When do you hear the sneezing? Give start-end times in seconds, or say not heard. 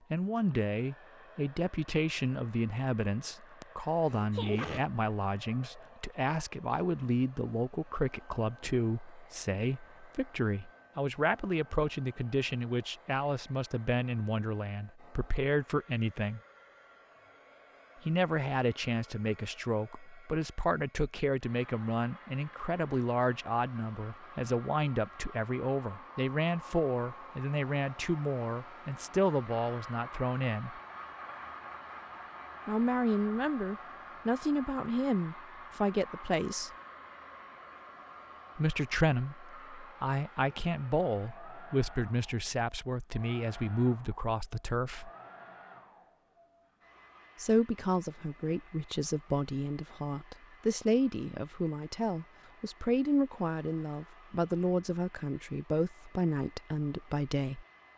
3.6-4.8.